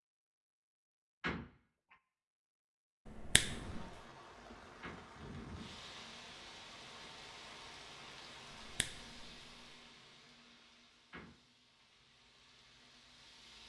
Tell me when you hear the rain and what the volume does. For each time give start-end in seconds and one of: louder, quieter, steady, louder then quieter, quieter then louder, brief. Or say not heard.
3.4-13.6 quieter.